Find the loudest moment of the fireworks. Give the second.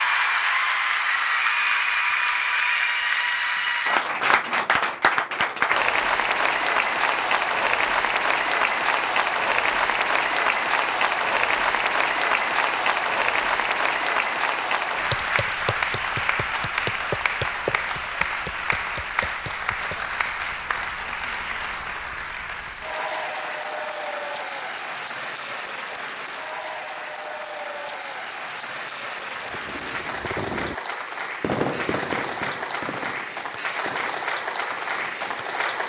32 s.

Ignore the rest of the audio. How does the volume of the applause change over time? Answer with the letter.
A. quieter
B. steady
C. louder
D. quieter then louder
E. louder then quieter
A.